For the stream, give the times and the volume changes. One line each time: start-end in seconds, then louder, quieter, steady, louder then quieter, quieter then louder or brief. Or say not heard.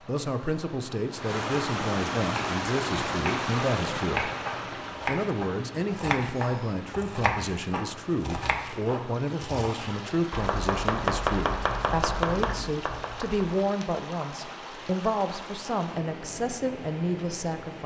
0.0-17.8 quieter.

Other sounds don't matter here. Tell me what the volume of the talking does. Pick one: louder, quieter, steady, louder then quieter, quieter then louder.
steady.